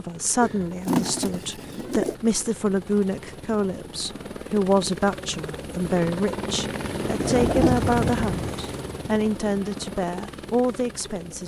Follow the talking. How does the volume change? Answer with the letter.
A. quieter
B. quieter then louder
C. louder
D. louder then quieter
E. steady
E.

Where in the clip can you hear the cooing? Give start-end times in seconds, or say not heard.
0.4-2.1, 7.2-8.8.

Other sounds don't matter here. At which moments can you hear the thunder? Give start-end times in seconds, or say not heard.
7.0-8.6.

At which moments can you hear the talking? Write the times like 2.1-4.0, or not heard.
0.0-11.4.